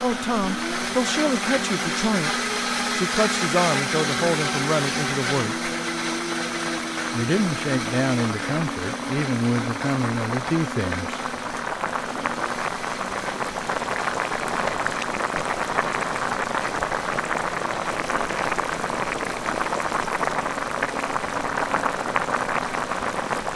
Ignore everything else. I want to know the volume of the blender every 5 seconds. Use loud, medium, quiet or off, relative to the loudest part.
loud, loud, medium, quiet, quiet.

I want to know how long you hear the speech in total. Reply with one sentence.
You can hear the speech for 10 seconds altogether.